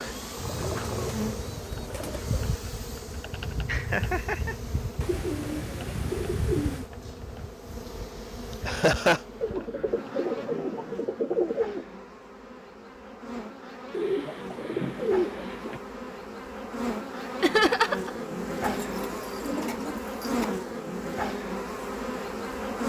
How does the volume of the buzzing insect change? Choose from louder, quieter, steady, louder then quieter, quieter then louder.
quieter then louder.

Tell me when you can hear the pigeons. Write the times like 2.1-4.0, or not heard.
0.5-2.5, 5.0-6.8, 9.4-11.8, 13.9-15.8, 18.6-20.4.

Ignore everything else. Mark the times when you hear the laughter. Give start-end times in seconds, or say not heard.
3.6-4.5, 8.7-9.2, 17.4-18.1.